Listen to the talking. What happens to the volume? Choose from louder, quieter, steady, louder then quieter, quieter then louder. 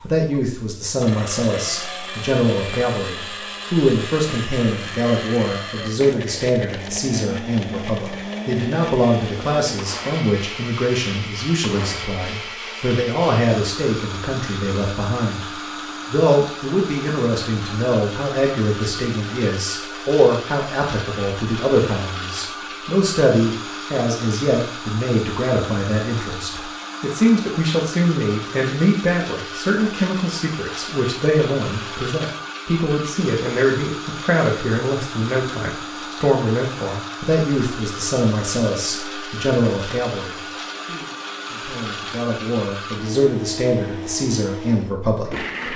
steady.